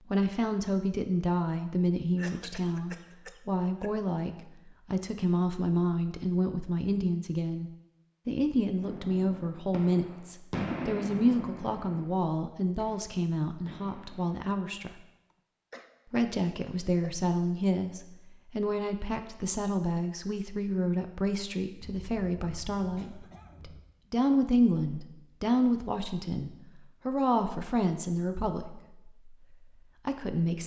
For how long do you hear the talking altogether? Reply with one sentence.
The talking can be heard for 29 seconds in total.